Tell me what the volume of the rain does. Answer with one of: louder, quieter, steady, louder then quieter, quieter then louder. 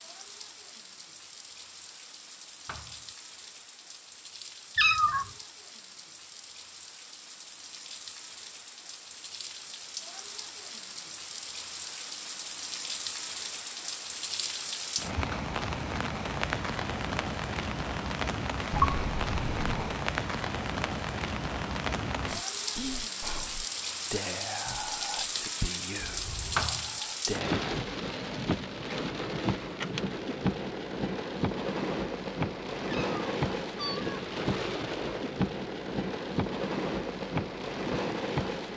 louder.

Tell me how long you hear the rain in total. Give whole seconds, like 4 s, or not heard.
39 s.